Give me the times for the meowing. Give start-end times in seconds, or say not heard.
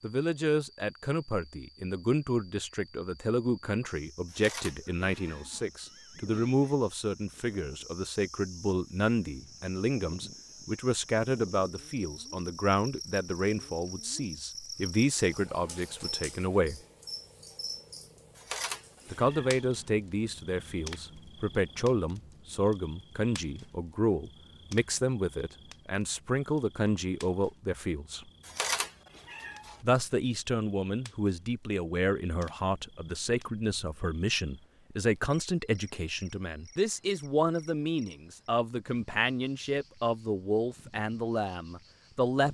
4.2-5.7, 18.4-19.6, 28.4-29.8.